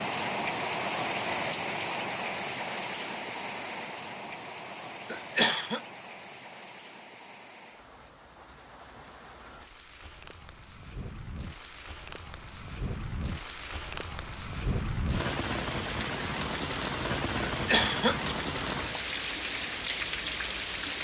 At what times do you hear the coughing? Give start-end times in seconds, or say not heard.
5.1-5.8, 17.4-18.4.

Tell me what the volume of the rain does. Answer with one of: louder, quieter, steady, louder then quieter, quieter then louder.
quieter then louder.